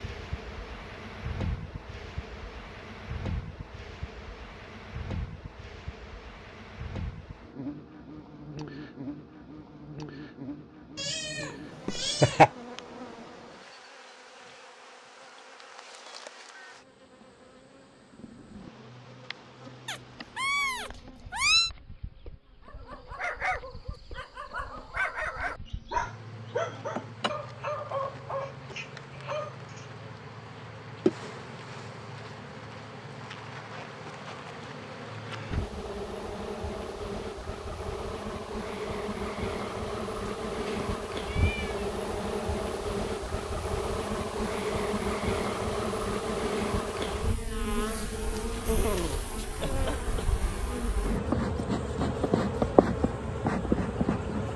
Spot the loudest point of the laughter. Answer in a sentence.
The volume of the laughter peaks at 12 seconds.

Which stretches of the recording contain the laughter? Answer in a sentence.
The laughter can be heard from 11.8 to 12.5 s and from 48.6 to 50.2 s.